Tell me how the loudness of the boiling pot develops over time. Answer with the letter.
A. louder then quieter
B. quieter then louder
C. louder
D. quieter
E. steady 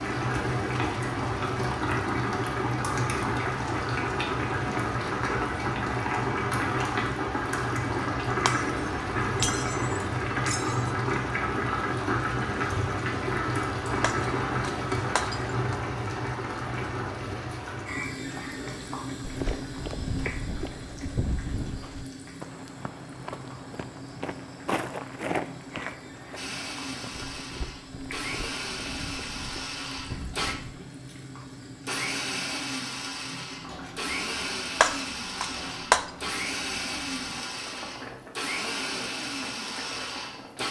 D.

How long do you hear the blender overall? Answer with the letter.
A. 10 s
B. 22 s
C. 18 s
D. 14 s
D.